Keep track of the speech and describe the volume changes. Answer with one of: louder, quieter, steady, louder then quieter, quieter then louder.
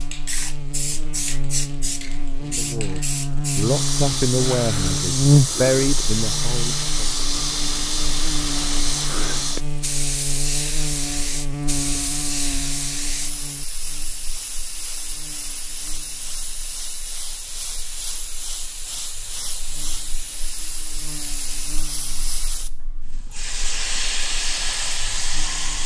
louder.